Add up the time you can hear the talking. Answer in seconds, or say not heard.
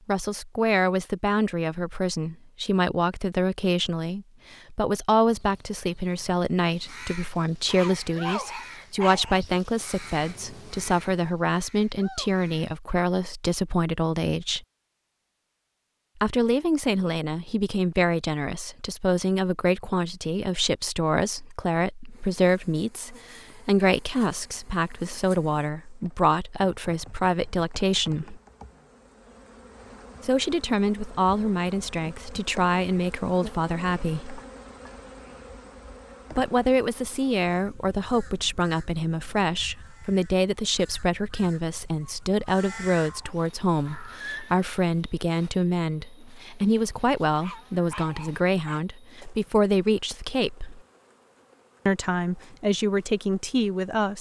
48 s.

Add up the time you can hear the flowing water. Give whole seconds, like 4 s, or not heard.
not heard.